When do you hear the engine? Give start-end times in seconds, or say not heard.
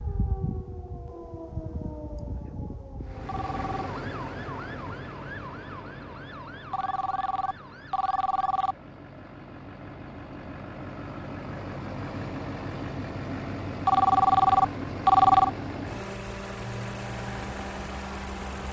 3.0-18.6.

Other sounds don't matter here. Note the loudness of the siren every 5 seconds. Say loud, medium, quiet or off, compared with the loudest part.
loud, medium, off, off.